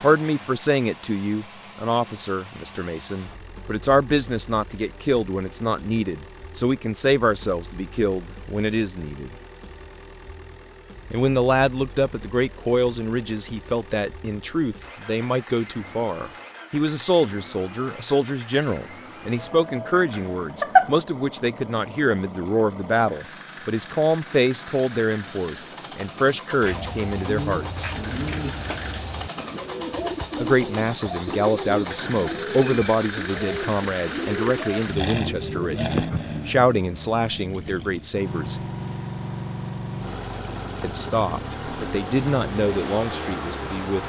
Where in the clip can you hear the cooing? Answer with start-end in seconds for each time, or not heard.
26.6-36.2.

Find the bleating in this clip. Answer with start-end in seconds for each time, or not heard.
19.4-20.9.